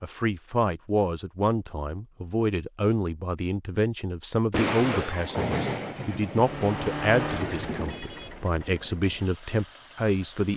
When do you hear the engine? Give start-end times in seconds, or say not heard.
6.3-10.5.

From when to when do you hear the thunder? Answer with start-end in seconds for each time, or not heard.
4.5-8.0.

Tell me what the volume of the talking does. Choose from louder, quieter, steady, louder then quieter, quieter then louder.
steady.